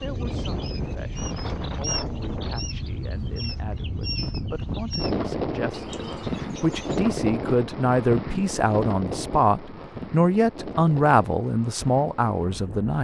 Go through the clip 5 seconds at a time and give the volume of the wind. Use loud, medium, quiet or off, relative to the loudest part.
loud, loud, medium.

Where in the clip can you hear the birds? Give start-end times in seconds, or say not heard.
0.0-7.0.